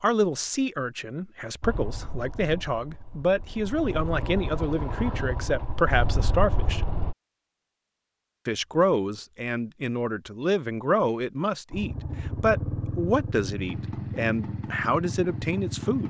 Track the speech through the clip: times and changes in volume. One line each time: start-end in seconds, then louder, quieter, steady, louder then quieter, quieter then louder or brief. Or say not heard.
0.0-6.8 louder
8.4-16.0 steady.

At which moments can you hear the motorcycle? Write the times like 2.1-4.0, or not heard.
1.6-7.2, 11.7-16.0.